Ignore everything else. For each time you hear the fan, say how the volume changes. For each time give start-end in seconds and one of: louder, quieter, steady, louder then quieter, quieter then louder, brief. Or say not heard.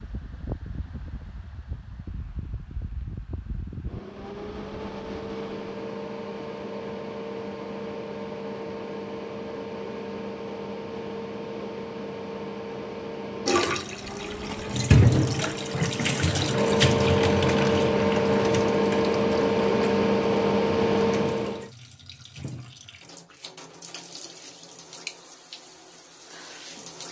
0.0-21.7 louder.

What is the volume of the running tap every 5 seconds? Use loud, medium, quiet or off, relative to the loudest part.
off, off, loud, loud, quiet, quiet.